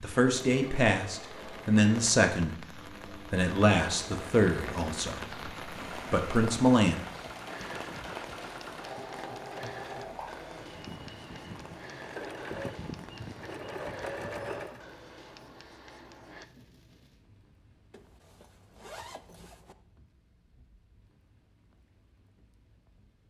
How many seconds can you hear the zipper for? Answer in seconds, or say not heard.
2 s.